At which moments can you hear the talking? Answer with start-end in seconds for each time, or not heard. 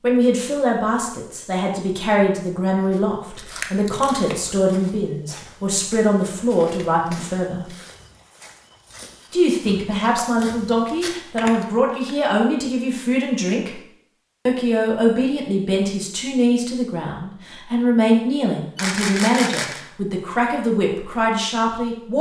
0.0-7.7, 9.3-13.8, 14.4-22.1.